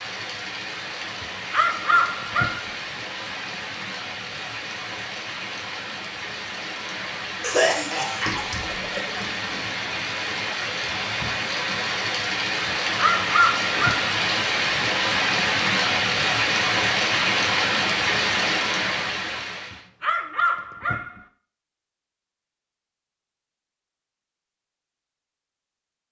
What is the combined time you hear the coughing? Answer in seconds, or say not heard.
2 s.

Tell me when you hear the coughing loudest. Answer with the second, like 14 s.
8 s.